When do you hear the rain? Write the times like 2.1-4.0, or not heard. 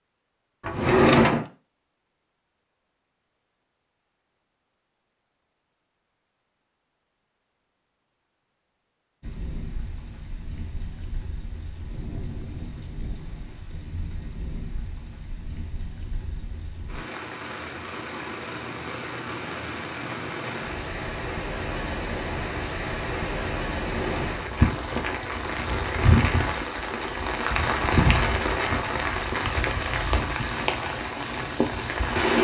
9.2-32.3.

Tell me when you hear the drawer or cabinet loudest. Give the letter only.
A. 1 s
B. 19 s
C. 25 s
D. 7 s
A.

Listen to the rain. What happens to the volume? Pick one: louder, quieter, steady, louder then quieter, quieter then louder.
louder.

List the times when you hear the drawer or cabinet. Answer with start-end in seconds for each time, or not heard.
0.6-1.4, 23.9-24.4.